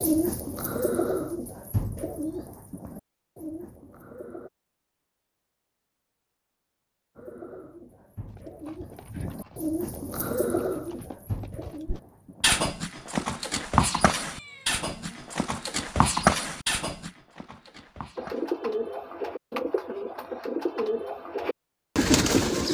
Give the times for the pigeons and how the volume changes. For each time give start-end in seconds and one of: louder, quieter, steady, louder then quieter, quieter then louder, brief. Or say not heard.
0.0-4.5 quieter
7.2-12.5 louder then quieter
18.1-22.6 louder.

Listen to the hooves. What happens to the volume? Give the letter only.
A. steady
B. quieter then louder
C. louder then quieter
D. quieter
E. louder
C.